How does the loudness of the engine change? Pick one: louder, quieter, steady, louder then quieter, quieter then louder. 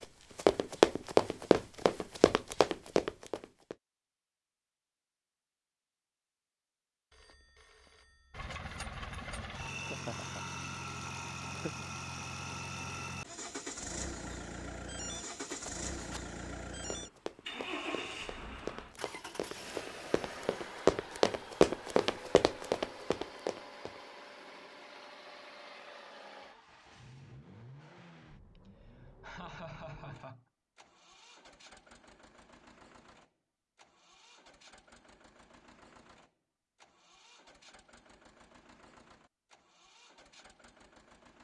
quieter.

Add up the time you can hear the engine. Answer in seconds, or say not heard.
33 s.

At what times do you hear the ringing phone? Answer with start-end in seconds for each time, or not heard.
7.1-8.6.